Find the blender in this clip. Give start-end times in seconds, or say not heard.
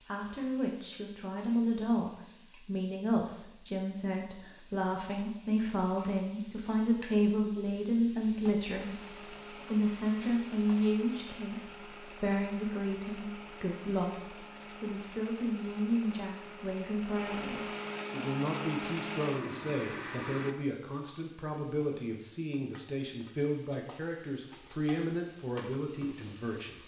8.8-20.6.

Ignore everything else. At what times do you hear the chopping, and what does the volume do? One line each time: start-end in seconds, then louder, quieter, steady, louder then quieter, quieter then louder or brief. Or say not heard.
not heard.